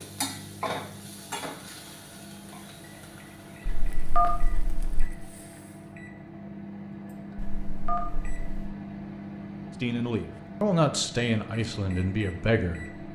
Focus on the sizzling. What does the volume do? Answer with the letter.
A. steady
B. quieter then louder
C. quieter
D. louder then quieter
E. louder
C.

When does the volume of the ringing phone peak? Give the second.
4 s.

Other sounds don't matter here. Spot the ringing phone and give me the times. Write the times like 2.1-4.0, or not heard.
3.6-5.1, 7.3-8.8.